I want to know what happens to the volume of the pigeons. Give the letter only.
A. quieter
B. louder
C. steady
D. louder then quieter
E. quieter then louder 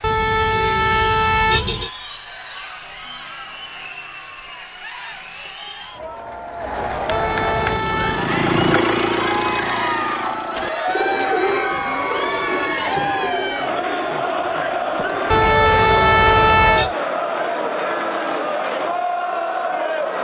A.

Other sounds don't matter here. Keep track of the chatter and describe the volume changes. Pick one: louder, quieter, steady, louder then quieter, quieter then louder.
louder.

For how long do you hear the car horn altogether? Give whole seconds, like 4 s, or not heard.
5 s.